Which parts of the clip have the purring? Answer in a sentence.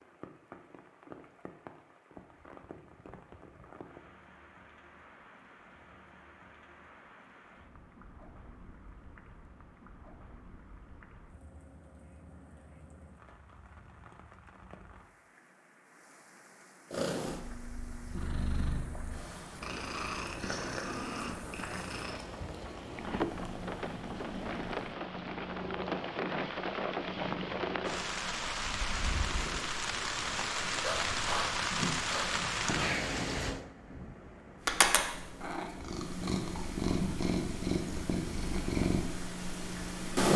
The purring can be heard from 16.9 to 29.7 s and from 34.6 to 40.3 s.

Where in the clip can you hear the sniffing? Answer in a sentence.
The sniffing can be heard from 30.8 to 33.1 s.